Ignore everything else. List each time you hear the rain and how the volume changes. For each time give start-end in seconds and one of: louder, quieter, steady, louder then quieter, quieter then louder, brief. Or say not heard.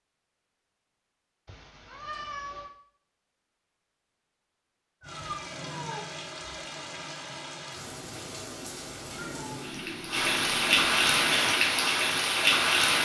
5.0-12.9 louder.